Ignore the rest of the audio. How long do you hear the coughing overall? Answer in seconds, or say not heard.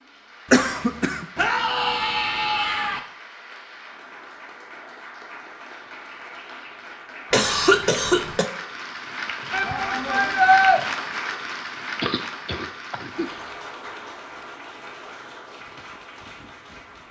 3 s.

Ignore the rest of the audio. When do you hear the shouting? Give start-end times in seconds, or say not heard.
1.4-3.0, 9.5-10.8.